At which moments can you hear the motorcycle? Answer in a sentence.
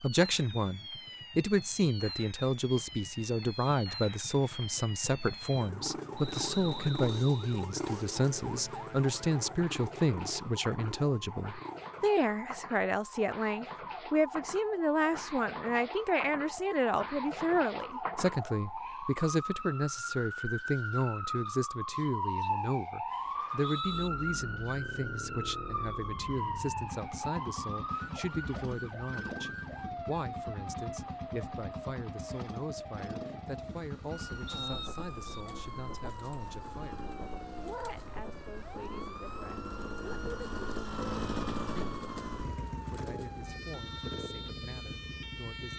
The motorcycle can be heard from 0.1 to 12.1 s and from 23.9 to 45.7 s.